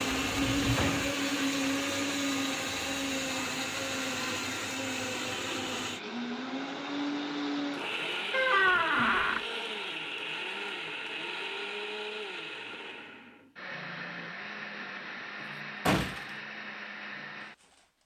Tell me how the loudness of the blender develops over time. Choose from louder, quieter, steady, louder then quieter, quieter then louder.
quieter.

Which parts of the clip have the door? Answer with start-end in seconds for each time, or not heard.
0.2-1.1, 8.3-9.4, 15.4-16.3.